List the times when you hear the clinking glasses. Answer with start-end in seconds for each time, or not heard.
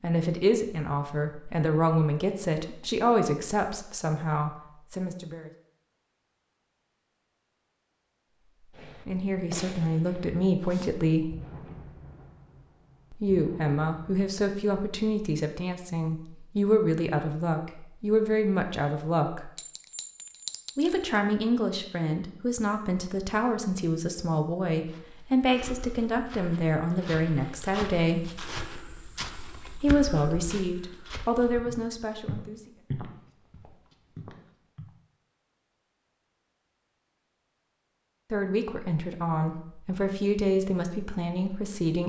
19.6-21.0.